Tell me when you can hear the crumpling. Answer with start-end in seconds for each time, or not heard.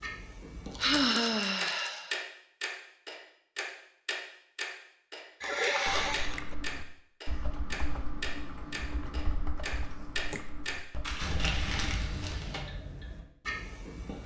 0.7-2.0, 5.4-6.5, 11.0-12.7.